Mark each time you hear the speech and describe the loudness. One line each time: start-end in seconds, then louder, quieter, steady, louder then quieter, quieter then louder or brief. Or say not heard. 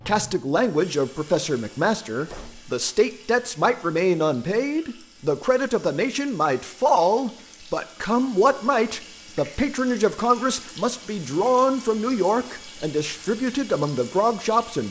0.1-14.8 steady.